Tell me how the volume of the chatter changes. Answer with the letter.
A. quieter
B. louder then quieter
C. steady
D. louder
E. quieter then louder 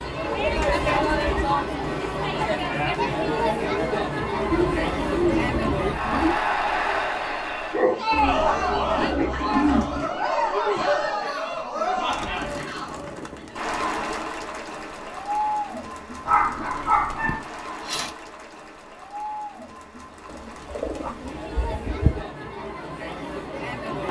A.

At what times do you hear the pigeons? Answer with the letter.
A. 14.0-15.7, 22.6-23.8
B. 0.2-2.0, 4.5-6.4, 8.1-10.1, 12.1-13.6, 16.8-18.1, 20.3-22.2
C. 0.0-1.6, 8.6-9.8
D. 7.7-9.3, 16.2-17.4
B.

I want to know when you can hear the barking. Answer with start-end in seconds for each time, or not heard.
7.7-9.3, 16.2-17.4.